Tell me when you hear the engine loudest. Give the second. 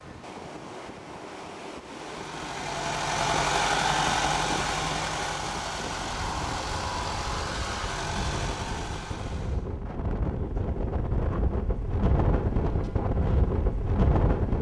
4 s.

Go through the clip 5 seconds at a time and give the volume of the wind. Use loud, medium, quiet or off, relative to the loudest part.
medium, medium, loud.